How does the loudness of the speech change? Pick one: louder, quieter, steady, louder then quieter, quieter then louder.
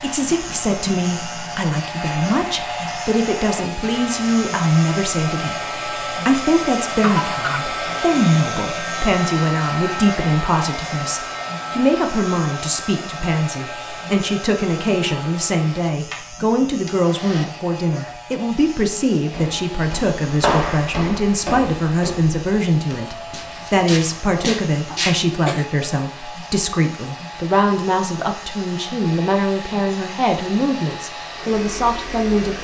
steady.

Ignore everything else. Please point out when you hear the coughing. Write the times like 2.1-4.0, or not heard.
7.0-7.7, 24.9-25.6.